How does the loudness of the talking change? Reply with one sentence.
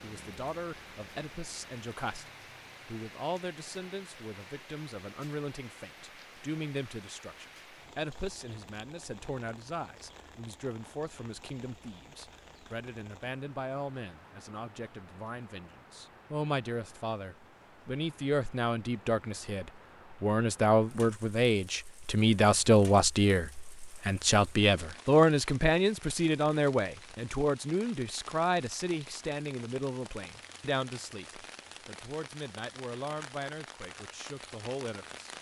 The loudness of the talking goes up, then down.